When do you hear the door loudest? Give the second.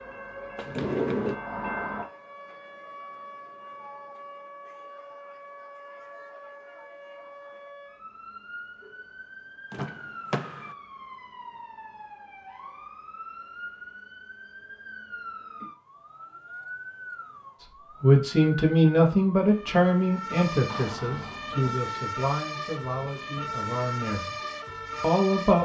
1 s.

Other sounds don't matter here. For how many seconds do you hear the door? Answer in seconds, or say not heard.
3 s.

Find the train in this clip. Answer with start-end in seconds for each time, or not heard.
0.0-2.1.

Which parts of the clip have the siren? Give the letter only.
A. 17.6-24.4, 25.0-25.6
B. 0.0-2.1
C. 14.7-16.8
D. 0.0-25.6
D.